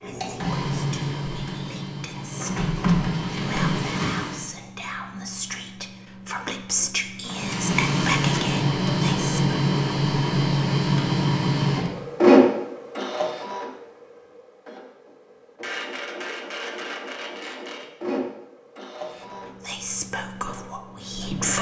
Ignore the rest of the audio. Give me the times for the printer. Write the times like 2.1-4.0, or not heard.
0.0-4.5, 7.2-21.5.